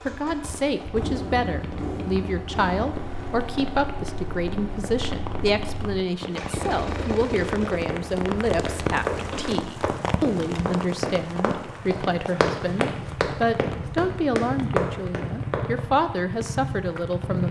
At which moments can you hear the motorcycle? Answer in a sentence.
The motorcycle can be heard from 0.0 to 17.4 s.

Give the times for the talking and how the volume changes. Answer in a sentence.
You can hear the talking from 0.1 to 17.4 s, at a steady volume.